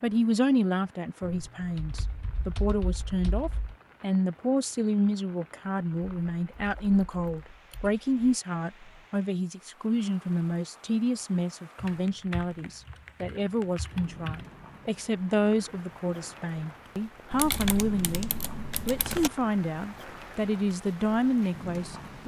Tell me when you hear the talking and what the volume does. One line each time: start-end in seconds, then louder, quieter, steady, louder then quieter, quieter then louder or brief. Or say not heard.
0.0-22.2 steady.